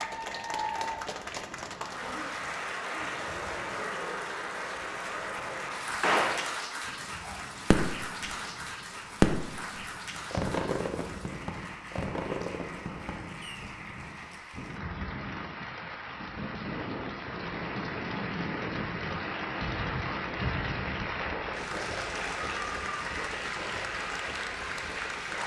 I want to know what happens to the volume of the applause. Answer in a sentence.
The volume of the applause goes down, then up.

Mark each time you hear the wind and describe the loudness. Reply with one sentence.
You can hear the wind from 0.0 to 25.4 s, getting louder.